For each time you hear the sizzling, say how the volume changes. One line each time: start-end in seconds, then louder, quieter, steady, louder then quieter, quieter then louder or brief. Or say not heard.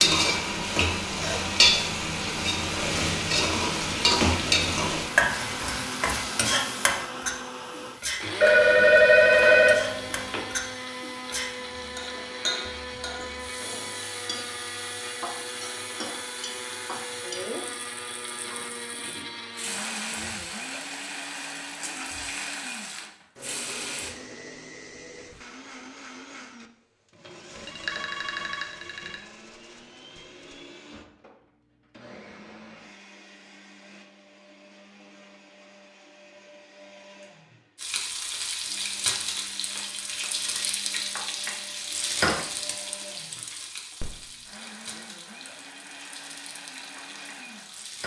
0.0-24.1 quieter
37.8-48.0 quieter.